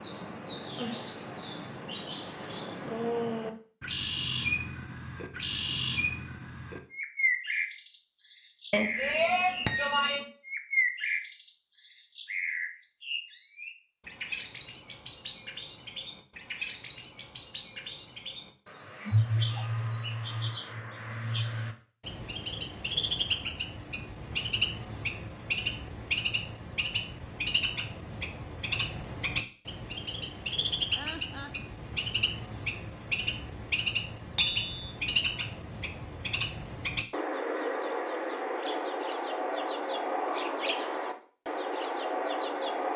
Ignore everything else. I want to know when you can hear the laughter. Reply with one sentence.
The laughter can be heard from 30.9 to 31.6 s.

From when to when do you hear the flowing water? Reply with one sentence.
You can't hear the flowing water here.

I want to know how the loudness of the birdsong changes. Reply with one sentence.
The loudness of the birdsong stays about the same.